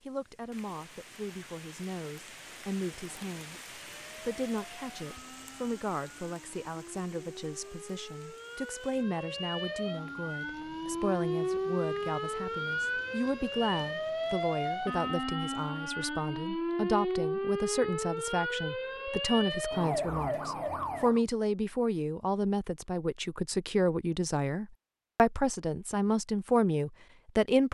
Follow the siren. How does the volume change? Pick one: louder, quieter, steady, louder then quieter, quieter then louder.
louder.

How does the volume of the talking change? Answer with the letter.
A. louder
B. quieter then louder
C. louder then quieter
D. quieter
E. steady
A.